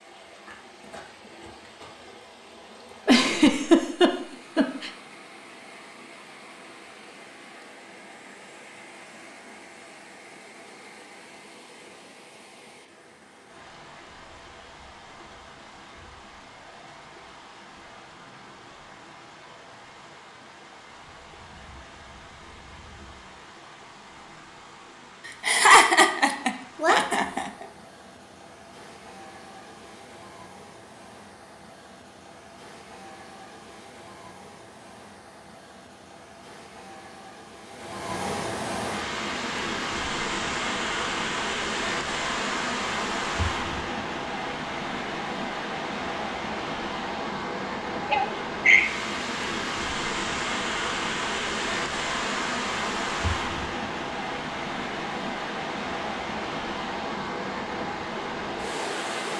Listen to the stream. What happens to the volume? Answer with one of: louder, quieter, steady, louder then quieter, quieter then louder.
louder.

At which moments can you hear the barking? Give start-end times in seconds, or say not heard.
not heard.